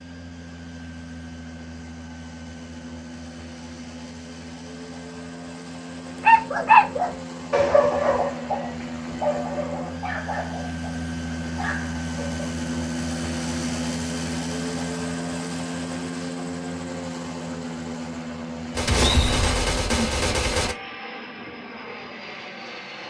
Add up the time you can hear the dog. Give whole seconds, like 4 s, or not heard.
6 s.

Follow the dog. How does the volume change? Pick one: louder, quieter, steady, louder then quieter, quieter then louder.
quieter.